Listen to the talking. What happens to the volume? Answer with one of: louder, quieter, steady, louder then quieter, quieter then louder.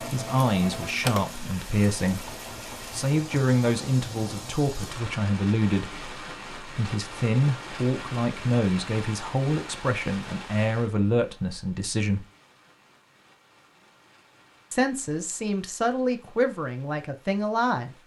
steady.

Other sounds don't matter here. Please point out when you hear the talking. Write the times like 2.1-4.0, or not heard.
0.0-12.2, 14.7-17.9.